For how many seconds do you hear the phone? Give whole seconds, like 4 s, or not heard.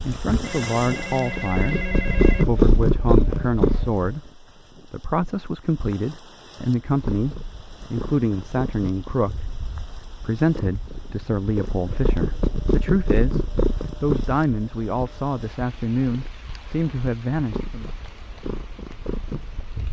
2 s.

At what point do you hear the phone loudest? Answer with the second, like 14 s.
2 s.